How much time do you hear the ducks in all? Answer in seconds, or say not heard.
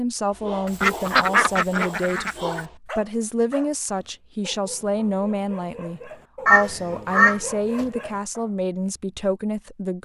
3 s.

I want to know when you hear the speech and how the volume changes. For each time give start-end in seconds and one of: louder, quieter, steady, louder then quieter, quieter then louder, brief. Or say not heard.
0.0-10.0 steady.